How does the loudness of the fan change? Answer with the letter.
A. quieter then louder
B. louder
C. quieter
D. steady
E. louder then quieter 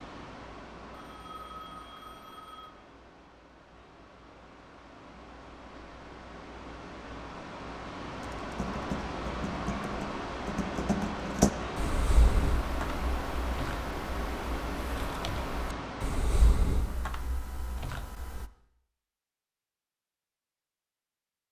B.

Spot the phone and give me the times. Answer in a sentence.
You can hear the phone from 0.9 to 2.7 s.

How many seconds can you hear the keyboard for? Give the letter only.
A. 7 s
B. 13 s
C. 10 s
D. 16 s
C.